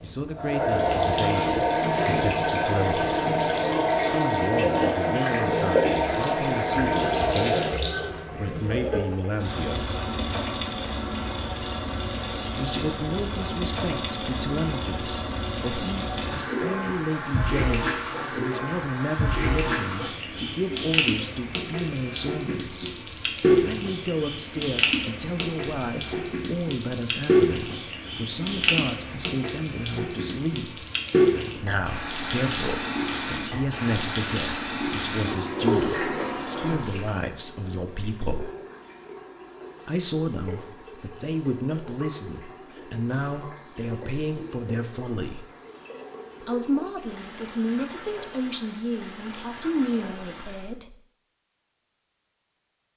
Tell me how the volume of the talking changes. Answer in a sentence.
The volume of the talking stays about the same.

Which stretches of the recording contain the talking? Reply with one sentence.
You can hear the talking from 0.0 to 10.0 s, from 12.6 to 30.9 s, from 31.6 to 38.5 s, from 39.9 to 45.5 s and from 46.4 to 51.0 s.